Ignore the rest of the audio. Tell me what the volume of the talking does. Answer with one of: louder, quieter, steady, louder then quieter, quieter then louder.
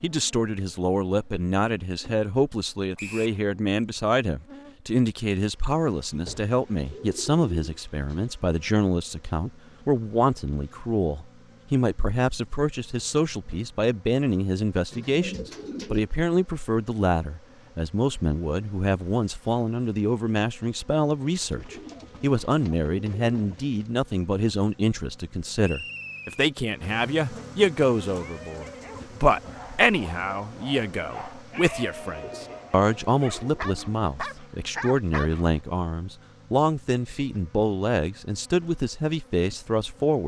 steady.